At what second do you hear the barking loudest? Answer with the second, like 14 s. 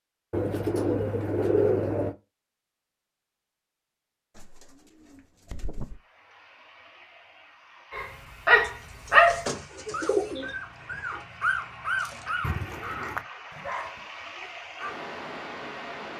9 s.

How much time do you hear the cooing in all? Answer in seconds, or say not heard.
6 s.